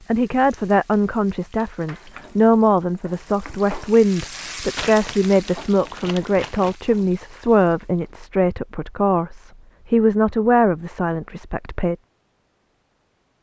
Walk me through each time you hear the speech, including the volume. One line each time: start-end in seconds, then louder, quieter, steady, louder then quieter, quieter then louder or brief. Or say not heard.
0.1-11.9 steady.